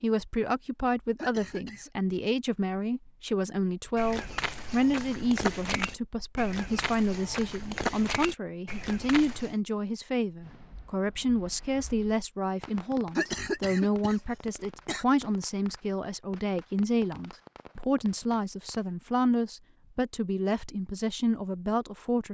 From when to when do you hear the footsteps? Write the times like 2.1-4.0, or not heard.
4.0-9.6.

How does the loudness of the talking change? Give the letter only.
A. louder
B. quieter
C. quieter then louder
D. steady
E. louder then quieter
D.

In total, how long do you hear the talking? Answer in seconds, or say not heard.
22 s.